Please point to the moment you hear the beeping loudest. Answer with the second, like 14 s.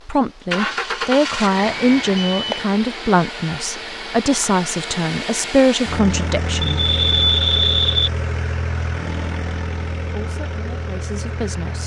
7 s.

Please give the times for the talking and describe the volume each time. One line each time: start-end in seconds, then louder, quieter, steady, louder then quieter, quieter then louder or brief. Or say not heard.
0.1-6.8 steady
10.0-11.8 brief.